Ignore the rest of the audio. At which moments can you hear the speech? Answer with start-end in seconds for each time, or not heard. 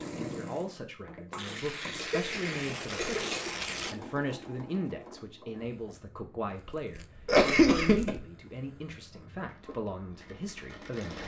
0.0-11.2.